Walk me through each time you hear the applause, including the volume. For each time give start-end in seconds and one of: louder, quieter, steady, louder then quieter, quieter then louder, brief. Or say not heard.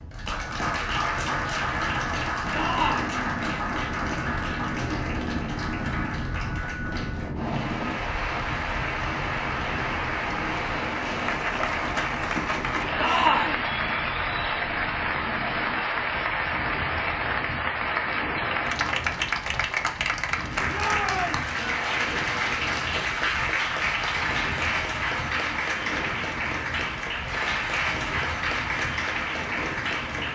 0.1-30.3 steady.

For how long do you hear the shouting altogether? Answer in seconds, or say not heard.
2 s.